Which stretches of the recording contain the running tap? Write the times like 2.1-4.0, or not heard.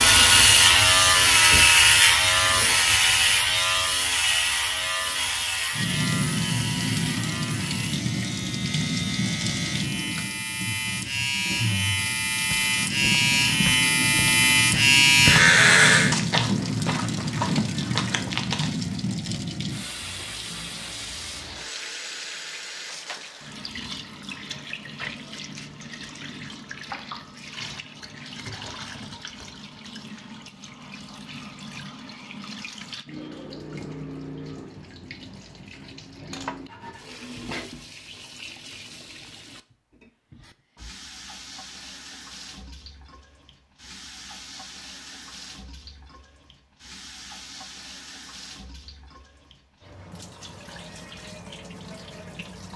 5.7-52.7.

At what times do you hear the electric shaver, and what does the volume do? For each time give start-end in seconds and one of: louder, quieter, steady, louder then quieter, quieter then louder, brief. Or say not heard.
0.0-16.1 quieter then louder.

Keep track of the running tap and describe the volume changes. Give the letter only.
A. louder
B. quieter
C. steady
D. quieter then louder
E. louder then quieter
B.